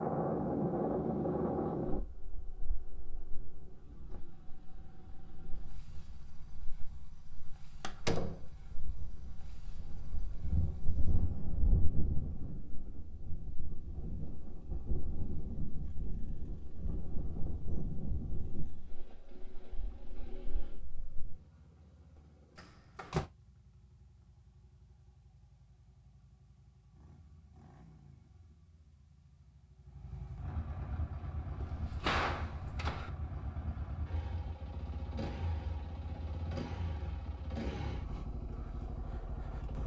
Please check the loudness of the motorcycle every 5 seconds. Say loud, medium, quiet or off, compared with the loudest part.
quiet, quiet, quiet, quiet, quiet, quiet, loud, loud.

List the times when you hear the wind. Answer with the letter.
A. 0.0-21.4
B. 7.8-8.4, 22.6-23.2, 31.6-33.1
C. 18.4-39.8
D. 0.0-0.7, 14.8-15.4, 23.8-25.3
A.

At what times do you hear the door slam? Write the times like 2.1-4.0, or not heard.
7.8-8.4, 22.6-23.2, 31.6-33.1.